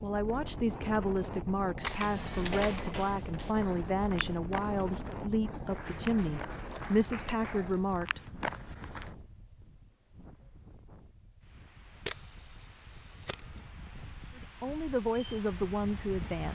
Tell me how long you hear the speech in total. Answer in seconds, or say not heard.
10 s.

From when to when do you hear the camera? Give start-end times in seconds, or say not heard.
1.8-2.8, 6.7-8.0, 12.1-13.4.